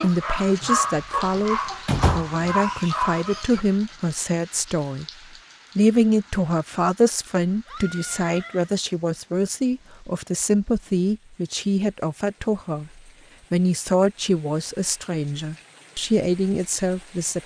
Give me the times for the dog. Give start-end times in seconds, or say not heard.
0.0-3.6.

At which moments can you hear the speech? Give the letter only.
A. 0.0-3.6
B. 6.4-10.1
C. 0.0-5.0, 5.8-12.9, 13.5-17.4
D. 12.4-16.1
C.